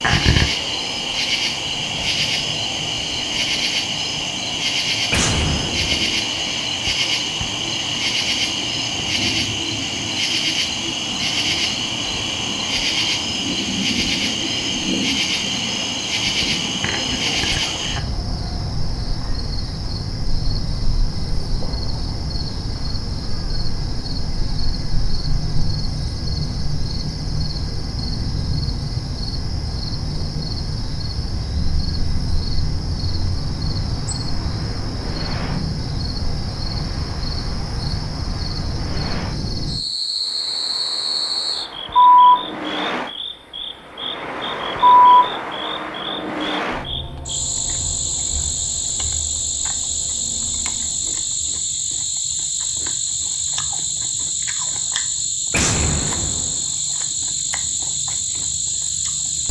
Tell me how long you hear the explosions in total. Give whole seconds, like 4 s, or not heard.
2 s.